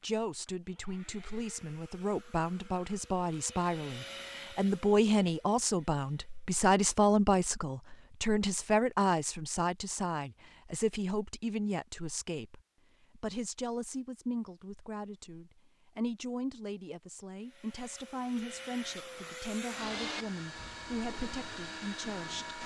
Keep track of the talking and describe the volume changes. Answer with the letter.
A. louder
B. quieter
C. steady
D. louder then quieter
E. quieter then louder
D.